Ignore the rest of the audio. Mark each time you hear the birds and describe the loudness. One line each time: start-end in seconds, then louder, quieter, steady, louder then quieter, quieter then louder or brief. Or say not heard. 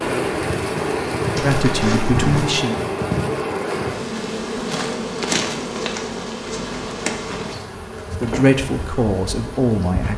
not heard.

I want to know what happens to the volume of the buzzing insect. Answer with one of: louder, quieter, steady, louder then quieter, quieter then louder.
quieter.